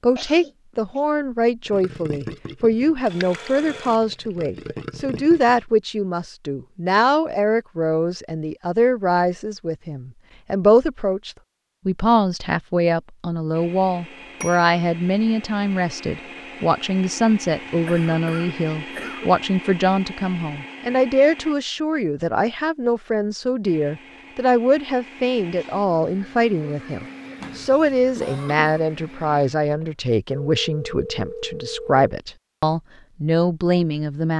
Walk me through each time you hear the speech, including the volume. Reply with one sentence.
You can hear the speech from 0.0 to 34.3 s, at a steady volume.